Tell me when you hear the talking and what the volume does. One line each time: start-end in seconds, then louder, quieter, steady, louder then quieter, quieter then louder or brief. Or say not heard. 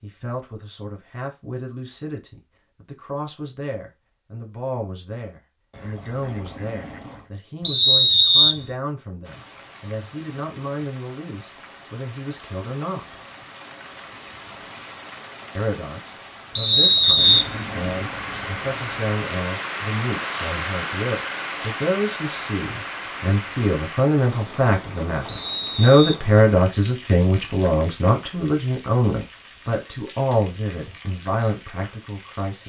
0.0-13.2 steady
15.6-32.6 louder then quieter.